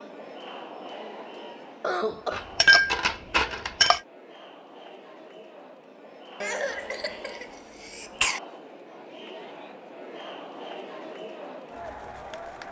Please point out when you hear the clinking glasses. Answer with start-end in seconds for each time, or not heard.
2.3-4.0.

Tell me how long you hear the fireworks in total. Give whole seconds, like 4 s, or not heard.
not heard.